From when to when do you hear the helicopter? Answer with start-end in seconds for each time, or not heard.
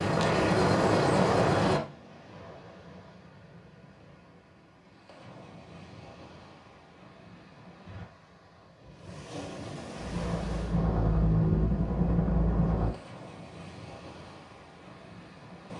0.0-1.8, 9.9-12.9.